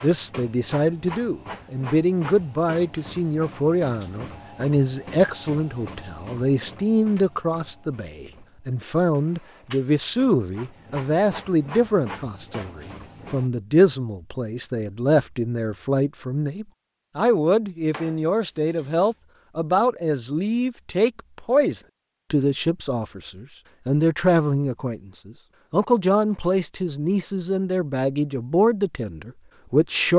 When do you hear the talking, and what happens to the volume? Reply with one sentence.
You can hear the talking from 0.0 to 30.1 s, at a steady volume.